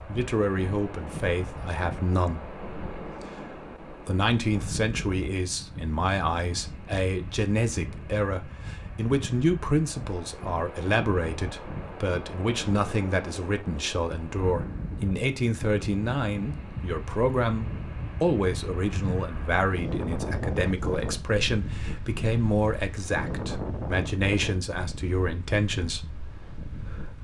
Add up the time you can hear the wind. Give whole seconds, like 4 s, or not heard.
27 s.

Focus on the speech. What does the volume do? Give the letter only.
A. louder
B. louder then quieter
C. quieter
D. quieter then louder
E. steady
E.